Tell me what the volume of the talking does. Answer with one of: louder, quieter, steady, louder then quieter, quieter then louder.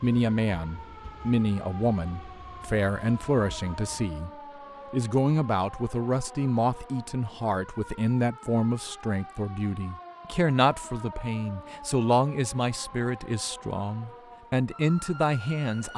steady.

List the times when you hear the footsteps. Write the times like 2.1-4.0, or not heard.
not heard.